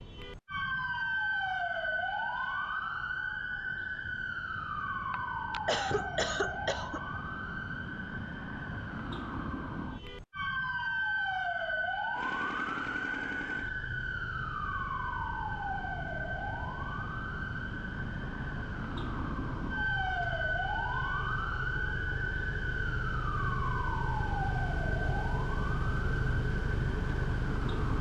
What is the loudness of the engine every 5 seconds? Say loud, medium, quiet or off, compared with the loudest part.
off, off, medium, medium, loud, loud.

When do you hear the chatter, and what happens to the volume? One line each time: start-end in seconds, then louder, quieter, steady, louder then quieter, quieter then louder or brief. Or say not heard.
not heard.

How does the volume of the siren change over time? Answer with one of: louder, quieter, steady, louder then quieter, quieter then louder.
steady.